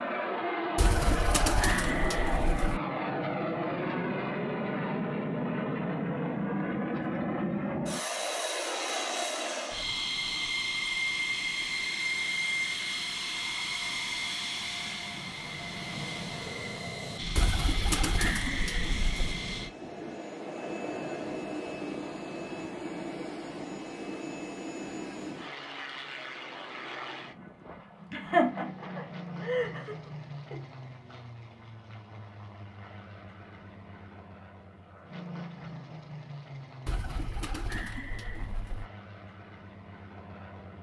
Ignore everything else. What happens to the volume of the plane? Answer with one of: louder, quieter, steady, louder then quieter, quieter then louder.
quieter.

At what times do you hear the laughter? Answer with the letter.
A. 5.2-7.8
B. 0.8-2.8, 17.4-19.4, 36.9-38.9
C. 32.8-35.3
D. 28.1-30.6
D.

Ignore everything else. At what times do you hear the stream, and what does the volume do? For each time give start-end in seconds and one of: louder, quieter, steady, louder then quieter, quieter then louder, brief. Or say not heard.
not heard.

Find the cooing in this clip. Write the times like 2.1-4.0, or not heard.
0.8-2.8, 17.4-19.4, 36.9-38.9.